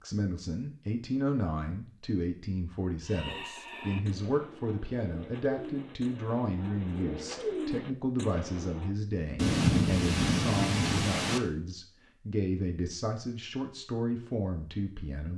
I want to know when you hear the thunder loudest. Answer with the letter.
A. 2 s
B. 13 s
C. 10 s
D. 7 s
C.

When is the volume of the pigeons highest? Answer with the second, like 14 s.
8 s.